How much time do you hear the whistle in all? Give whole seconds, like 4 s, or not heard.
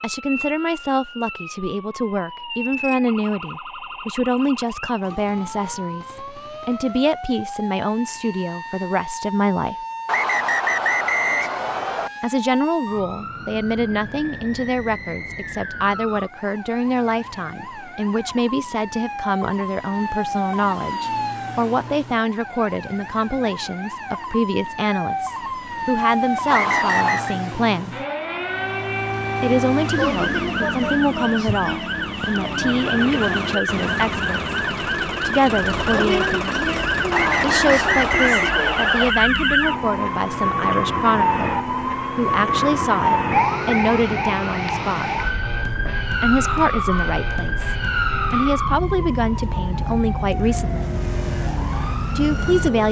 5 s.